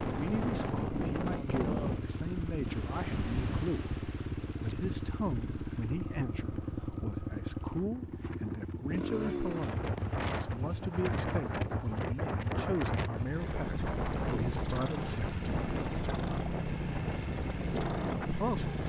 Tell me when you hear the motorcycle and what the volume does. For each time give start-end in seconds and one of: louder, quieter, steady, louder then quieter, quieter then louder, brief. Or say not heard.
0.0-18.8 steady.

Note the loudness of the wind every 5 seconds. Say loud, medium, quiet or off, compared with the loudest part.
loud, medium, loud, loud.